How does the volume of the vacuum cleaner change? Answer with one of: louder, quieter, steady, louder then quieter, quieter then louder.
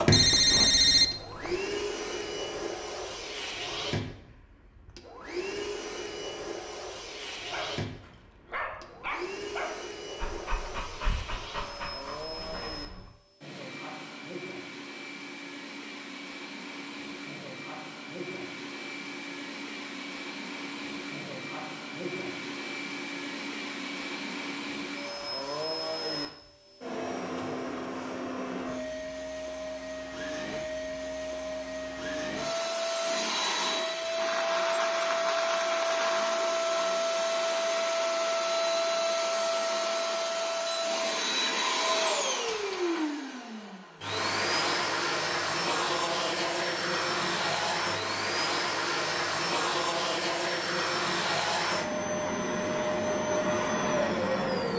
louder.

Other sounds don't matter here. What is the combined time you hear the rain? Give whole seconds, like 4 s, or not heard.
not heard.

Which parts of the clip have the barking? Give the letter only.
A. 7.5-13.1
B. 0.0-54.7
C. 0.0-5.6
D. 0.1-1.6
A.